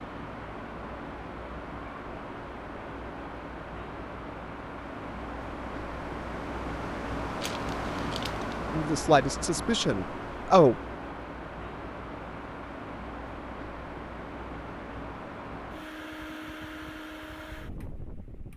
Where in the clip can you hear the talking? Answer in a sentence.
The talking can be heard from 8.7 to 10.8 s.